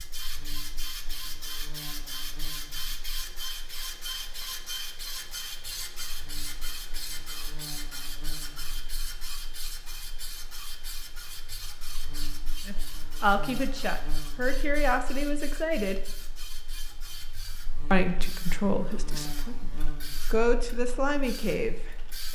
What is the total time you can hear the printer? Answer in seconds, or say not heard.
22 s.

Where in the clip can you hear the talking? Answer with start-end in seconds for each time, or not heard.
12.7-16.0, 17.9-19.7, 20.3-21.9.